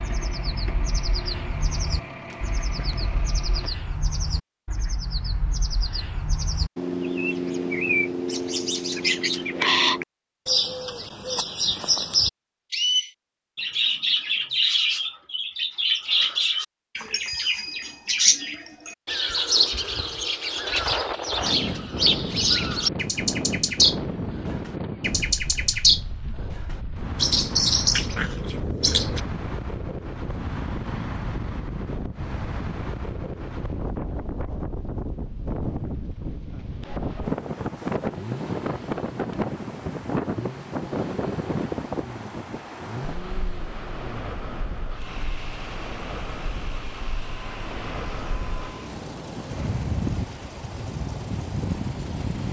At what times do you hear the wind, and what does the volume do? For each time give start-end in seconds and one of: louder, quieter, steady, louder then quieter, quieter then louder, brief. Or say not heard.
20.6-52.4 steady.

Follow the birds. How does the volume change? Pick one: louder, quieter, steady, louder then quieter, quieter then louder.
louder.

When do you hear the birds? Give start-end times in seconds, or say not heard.
0.0-29.2.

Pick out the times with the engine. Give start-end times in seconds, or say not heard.
0.0-3.7, 38.0-52.4.